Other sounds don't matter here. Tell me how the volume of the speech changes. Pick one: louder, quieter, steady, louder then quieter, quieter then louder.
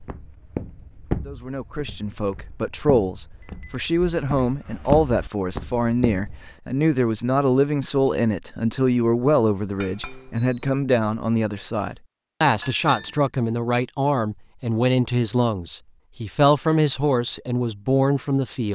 steady.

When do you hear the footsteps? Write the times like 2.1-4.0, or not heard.
0.0-6.5.